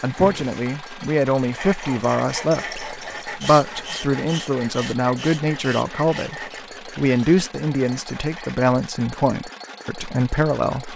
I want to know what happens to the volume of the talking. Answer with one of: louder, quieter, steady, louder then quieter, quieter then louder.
steady.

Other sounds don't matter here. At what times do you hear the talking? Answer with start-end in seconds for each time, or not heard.
0.0-10.9.